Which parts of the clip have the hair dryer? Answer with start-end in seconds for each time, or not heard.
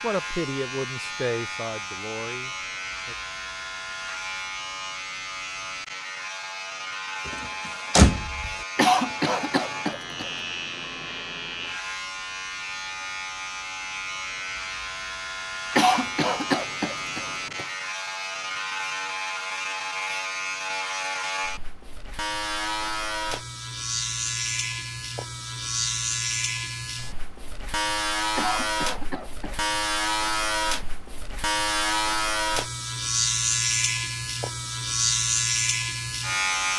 not heard.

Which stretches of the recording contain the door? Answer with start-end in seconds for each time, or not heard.
7.2-8.6.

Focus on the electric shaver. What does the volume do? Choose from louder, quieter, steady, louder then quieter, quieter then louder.
louder.